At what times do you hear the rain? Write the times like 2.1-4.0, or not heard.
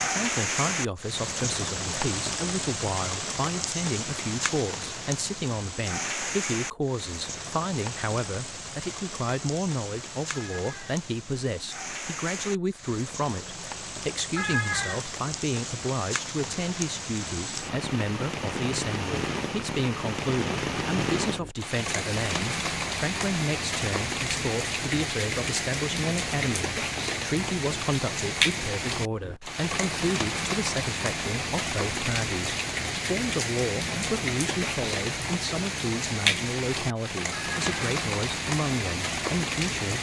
0.0-39.9.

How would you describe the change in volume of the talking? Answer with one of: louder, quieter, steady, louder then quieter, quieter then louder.
steady.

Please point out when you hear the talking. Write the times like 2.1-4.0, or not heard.
0.1-39.9.